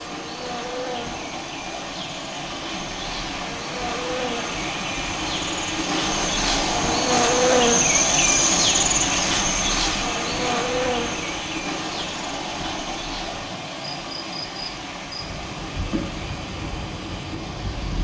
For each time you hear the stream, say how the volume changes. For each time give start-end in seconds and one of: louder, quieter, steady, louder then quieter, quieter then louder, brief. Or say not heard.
0.0-17.9 louder then quieter.